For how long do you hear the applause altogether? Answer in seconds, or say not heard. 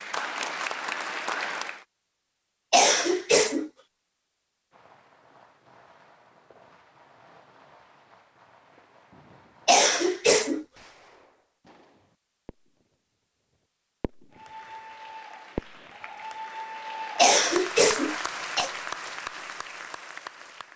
8 s.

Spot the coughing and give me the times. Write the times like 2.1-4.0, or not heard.
2.7-3.7, 9.7-10.7, 17.1-18.7.